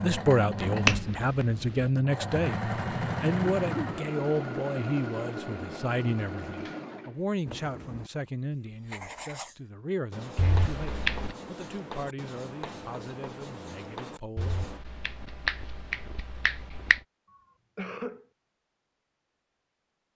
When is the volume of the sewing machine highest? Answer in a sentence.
The volume of the sewing machine peaks at 3 seconds.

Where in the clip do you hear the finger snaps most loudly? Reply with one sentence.
The loudest moment of the finger snaps is at 1 second.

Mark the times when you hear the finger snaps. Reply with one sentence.
The finger snaps can be heard from 0.7 to 1.9 s, from 10.3 to 11.3 s and from 14.3 to 17.0 s.